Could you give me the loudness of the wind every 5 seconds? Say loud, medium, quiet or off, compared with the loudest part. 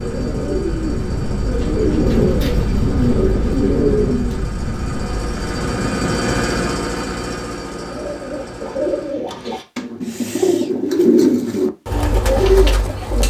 loud, loud, off.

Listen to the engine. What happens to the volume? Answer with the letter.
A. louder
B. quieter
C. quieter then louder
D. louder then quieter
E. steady
D.